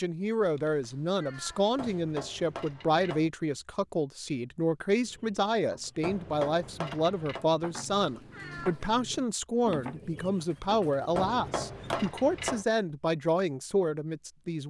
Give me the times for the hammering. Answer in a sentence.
The hammering can be heard from 1.8 to 3.3 s, from 6.0 to 7.5 s and from 11.2 to 12.7 s.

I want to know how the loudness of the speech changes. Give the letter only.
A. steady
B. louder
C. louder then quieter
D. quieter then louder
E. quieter
A.